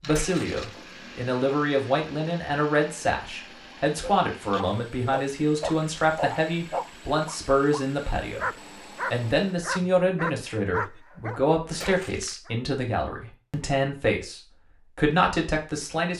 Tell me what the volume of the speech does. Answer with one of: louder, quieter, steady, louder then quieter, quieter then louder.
steady.